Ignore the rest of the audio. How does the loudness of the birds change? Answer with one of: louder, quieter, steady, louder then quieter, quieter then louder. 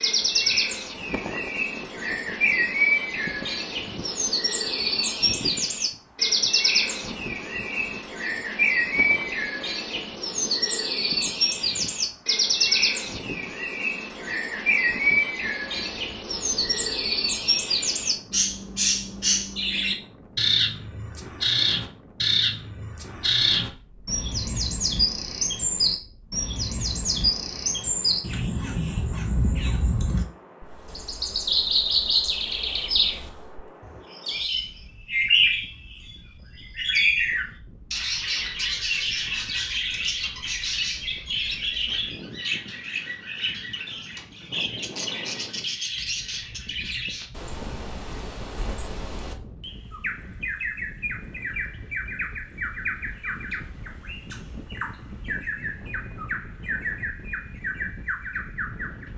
quieter.